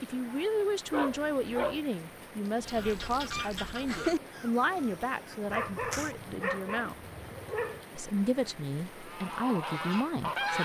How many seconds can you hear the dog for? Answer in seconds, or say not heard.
3 s.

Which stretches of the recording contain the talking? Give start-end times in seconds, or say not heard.
0.0-7.0, 7.9-10.5.